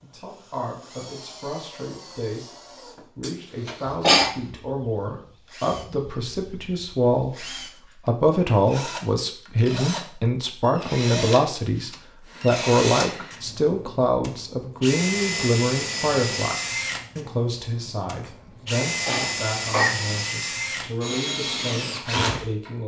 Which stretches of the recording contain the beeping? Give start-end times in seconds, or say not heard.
not heard.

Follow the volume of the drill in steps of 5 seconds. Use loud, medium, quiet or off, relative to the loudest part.
quiet, medium, loud, loud, loud.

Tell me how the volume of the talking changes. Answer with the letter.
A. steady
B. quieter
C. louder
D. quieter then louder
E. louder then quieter
E.